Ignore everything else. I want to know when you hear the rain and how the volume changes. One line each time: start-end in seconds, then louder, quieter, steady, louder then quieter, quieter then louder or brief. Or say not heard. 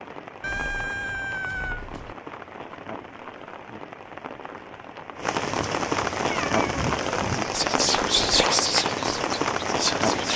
0.0-10.3 louder.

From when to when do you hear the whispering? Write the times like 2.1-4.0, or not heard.
7.4-10.3.